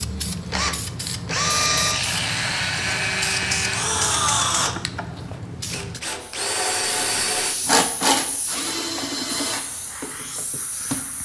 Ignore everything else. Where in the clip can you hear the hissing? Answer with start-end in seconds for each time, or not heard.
0.0-11.2.